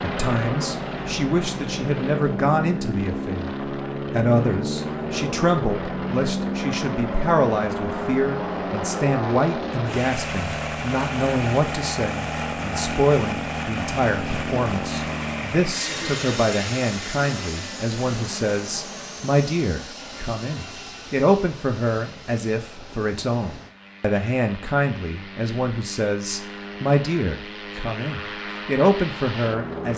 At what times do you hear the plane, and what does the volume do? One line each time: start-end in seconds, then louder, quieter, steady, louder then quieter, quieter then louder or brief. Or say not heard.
0.0-29.9 quieter.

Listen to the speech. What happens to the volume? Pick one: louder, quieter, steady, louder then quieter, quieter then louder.
steady.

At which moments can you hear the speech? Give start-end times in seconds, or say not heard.
0.0-29.9.